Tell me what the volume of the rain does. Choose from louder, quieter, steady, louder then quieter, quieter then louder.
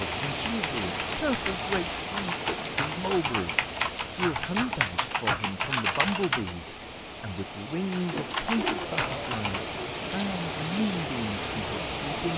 quieter then louder.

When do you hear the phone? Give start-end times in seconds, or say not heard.
not heard.